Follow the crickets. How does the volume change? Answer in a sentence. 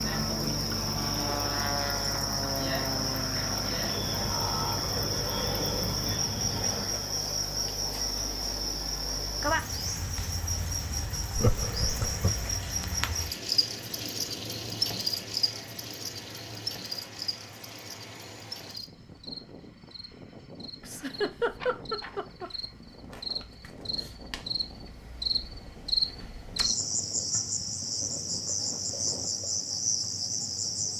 The volume of the crickets goes down, then up.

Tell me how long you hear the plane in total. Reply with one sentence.
The plane can be heard for 29 seconds in total.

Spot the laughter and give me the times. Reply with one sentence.
The laughter can be heard from 4.2 to 4.9 s, from 11.3 to 12.6 s and from 20.8 to 22.5 s.